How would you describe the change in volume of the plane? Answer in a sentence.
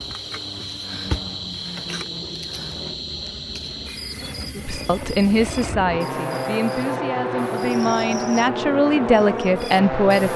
The volume of the plane goes up.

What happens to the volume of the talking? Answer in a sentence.
The volume of the talking goes down, then up.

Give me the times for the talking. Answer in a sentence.
You can hear the talking from 4.5 to 10.3 s.